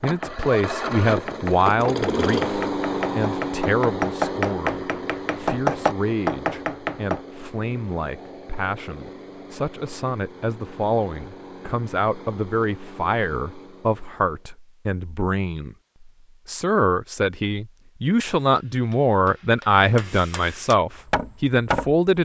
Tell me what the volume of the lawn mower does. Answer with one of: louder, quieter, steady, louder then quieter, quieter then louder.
quieter.